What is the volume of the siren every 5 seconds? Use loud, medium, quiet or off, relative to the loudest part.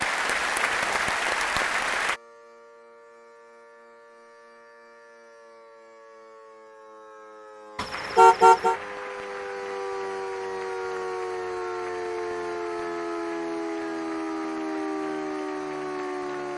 quiet, medium, loud, loud.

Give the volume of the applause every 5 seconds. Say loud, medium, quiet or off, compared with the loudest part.
loud, quiet, quiet, quiet.